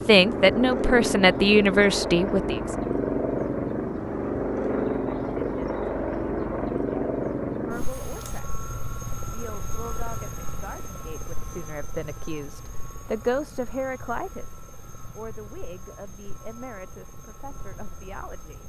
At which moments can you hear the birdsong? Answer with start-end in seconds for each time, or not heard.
not heard.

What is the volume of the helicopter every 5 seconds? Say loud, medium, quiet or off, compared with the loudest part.
loud, loud, quiet, quiet.